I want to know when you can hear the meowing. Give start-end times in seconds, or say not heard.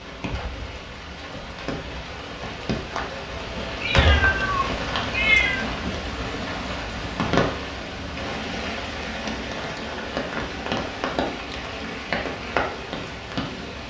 3.8-5.7.